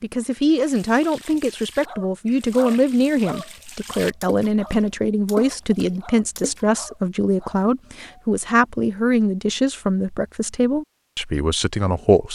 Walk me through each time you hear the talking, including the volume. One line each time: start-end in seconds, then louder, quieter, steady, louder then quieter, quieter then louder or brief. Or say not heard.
0.0-12.3 steady.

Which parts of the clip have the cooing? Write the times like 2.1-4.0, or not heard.
not heard.